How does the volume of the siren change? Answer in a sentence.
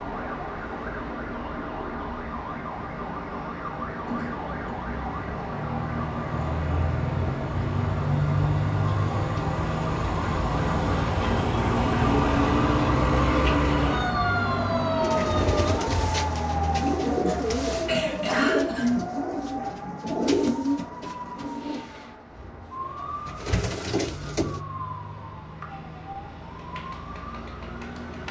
The loudness of the siren goes up, then down.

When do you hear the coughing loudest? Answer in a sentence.
The loudest moment of the coughing is at 18 seconds.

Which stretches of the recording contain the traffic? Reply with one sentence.
You can hear the traffic from 0.0 to 28.2 s.